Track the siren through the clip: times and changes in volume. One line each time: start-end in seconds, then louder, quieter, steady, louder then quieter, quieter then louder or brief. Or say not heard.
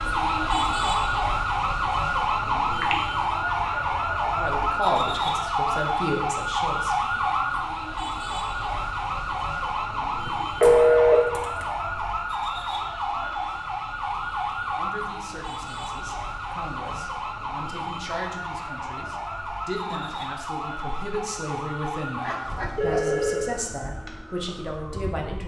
0.0-25.4 quieter.